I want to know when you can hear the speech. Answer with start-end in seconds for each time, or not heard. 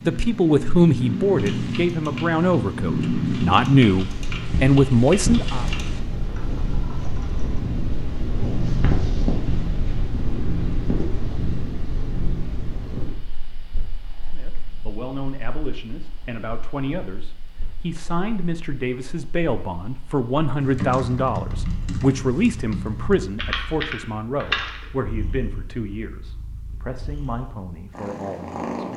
0.1-5.7, 14.2-28.9.